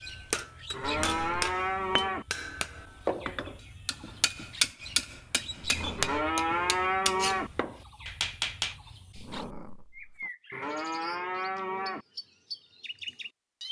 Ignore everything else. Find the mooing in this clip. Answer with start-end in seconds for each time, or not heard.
0.7-2.2, 6.0-7.5, 10.5-12.1.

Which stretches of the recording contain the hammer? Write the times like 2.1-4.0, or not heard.
0.1-8.8.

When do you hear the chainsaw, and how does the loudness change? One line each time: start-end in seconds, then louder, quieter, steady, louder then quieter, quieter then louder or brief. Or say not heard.
not heard.